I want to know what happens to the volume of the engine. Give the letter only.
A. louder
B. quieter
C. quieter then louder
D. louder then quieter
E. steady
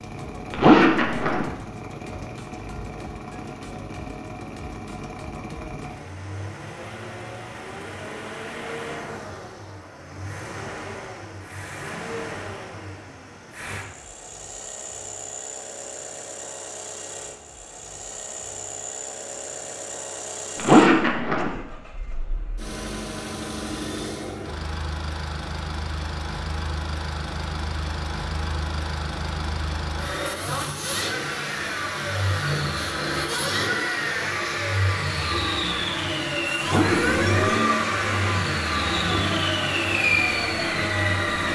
A.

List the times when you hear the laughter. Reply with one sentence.
You can't hear the laughter here.